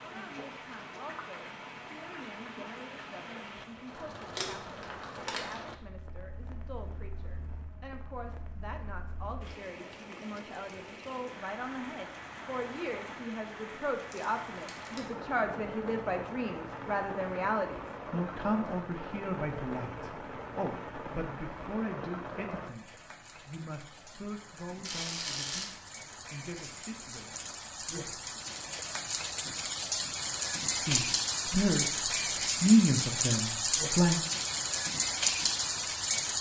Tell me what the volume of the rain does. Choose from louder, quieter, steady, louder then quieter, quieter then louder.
louder.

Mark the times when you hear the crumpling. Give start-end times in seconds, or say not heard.
4.3-5.8, 14.1-15.1, 24.8-25.7.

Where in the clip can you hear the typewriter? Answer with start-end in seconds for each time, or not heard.
not heard.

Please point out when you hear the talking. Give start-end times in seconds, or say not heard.
0.0-28.2, 30.8-34.2.